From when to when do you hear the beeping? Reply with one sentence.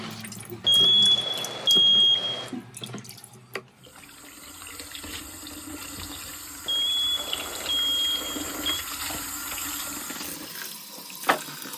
You can hear the beeping from 0.6 to 2.5 s and from 6.7 to 8.8 s.